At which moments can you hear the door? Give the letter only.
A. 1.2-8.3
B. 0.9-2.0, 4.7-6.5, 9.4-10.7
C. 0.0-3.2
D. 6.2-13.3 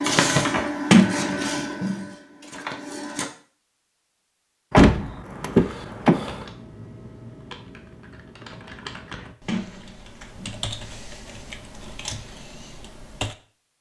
B.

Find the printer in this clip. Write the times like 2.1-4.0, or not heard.
0.0-3.2.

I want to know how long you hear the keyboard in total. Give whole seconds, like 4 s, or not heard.
7 s.